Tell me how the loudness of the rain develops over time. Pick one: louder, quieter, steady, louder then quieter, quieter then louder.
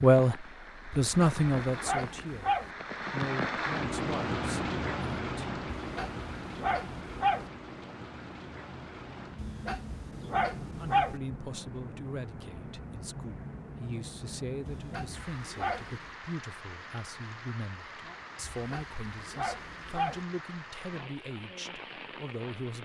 quieter.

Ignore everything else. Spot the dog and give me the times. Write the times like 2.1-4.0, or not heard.
0.9-2.7, 5.8-7.5, 9.3-11.2, 14.7-16.1, 18.5-20.2.